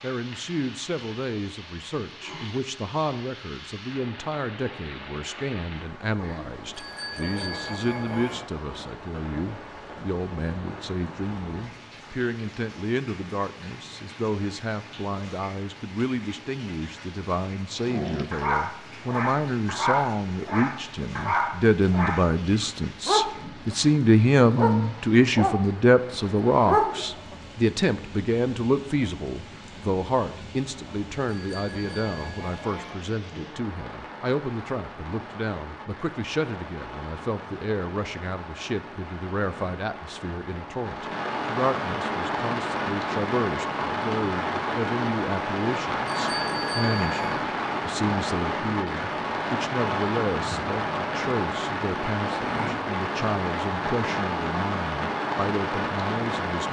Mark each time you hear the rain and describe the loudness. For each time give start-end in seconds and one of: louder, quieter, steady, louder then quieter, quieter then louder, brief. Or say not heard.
0.0-56.6 louder.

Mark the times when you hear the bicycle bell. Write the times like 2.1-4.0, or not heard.
6.8-8.4, 31.4-33.0, 46.1-47.5.